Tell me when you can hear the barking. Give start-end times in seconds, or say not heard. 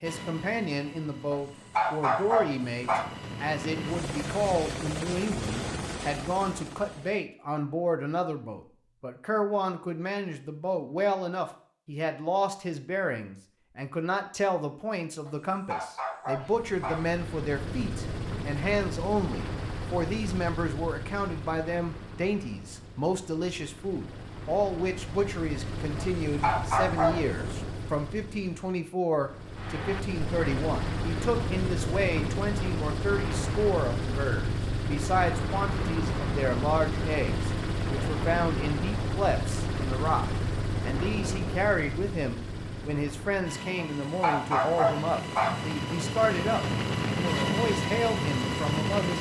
1.3-3.0, 15.2-17.1, 25.9-27.4, 43.8-45.6.